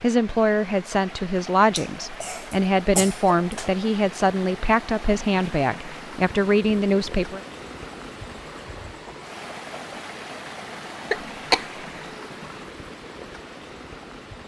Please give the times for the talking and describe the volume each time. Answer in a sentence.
You can hear the talking from 0.0 to 7.4 s, at a steady volume.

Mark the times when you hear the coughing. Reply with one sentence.
You can hear the coughing from 1.8 to 3.7 s and from 11.1 to 12.7 s.